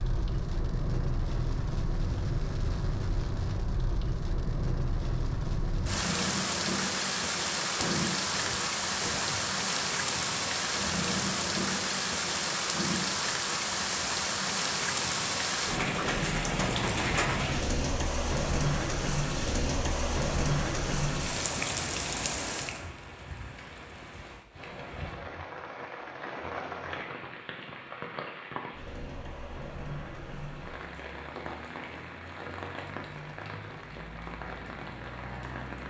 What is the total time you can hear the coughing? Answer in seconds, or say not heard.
2 s.